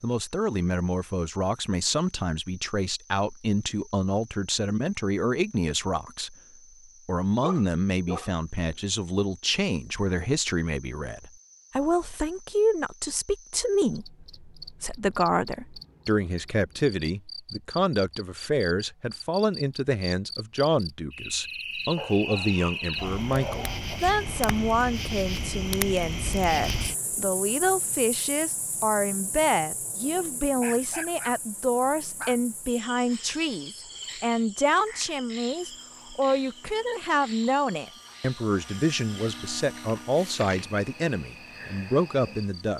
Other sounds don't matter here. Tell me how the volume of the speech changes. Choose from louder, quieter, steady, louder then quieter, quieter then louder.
steady.